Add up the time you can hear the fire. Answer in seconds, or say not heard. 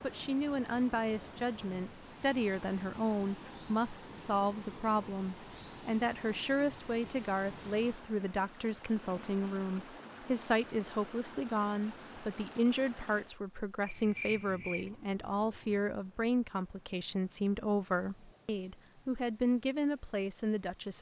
not heard.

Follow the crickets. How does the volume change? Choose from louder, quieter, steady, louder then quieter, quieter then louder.
quieter.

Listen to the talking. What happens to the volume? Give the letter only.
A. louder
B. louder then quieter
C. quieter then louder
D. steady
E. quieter
D.